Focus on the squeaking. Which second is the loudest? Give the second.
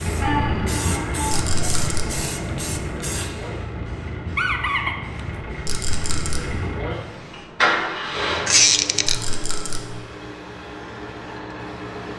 9 s.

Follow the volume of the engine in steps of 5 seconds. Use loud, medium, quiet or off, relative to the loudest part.
loud, loud, medium.